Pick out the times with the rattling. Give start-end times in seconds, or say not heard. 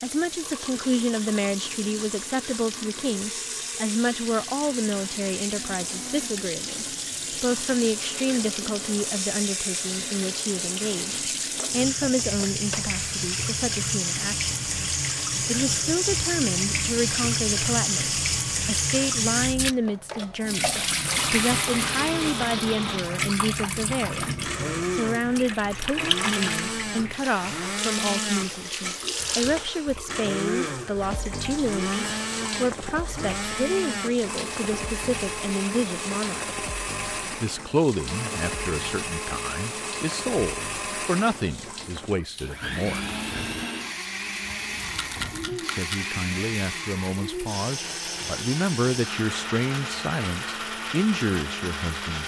44.8-46.1.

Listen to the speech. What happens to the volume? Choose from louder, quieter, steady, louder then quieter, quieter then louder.
steady.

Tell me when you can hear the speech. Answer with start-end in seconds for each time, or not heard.
0.0-14.6, 15.4-36.5, 37.4-43.0, 45.5-52.2.